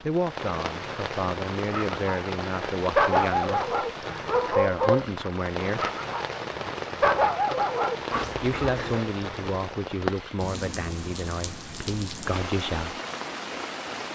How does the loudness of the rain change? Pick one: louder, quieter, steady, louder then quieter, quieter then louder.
steady.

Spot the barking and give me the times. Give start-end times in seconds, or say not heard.
1.6-9.1.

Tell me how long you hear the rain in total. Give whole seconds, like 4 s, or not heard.
14 s.